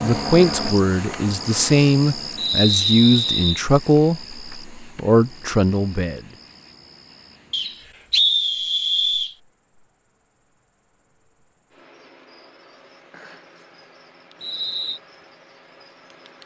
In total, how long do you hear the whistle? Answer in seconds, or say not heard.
4 s.